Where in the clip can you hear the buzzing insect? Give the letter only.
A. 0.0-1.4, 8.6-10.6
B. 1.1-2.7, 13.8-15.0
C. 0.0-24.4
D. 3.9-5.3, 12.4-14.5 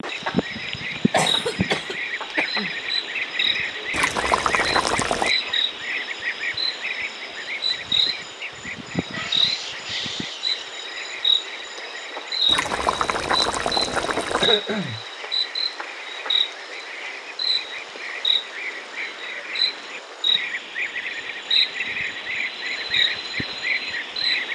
C.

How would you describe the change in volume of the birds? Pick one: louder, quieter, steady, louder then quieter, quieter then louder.
quieter then louder.